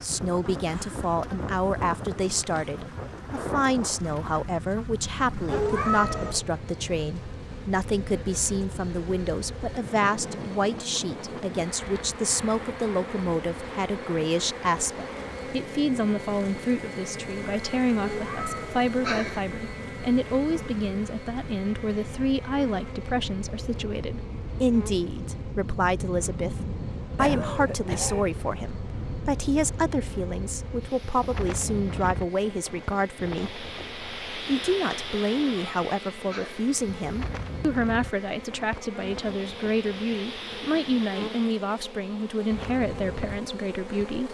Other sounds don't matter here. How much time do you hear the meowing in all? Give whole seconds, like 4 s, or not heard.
4 s.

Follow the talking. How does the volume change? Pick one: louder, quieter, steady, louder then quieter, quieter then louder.
steady.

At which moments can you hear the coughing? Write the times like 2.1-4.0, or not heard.
0.7-1.1, 27.1-28.2.